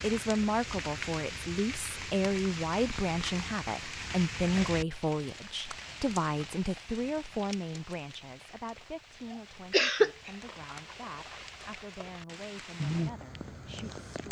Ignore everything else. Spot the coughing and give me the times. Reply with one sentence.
You can hear the coughing from 9.7 to 10.8 s.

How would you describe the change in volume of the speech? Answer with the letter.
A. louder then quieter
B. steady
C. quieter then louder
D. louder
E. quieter
E.